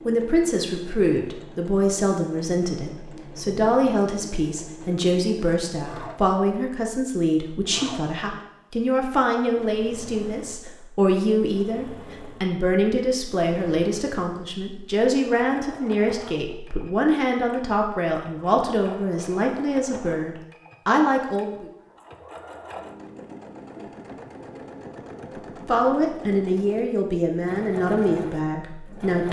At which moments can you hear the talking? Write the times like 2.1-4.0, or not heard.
0.1-21.6, 25.6-29.2.